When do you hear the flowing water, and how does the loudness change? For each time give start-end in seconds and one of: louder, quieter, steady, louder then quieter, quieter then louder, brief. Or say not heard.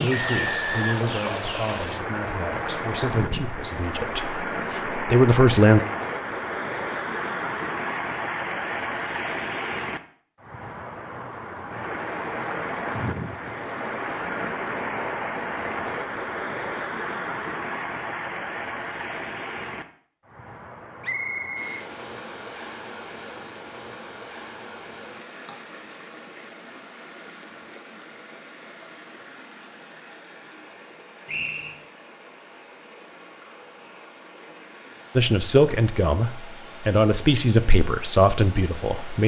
0.0-39.2 quieter.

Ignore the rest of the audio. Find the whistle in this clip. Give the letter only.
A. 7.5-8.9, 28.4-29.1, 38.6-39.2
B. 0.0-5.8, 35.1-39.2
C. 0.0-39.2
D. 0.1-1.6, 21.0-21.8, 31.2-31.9
D.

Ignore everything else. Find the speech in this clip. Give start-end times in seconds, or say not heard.
0.0-5.8, 35.1-39.2.